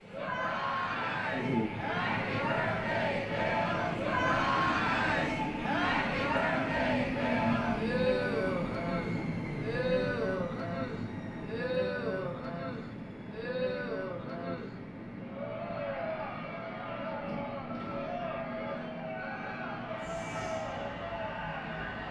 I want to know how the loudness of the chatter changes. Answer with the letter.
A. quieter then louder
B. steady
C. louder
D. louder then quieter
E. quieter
E.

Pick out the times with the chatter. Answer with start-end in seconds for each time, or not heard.
0.1-22.0.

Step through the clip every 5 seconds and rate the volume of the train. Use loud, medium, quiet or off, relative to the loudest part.
loud, loud, medium, medium, medium.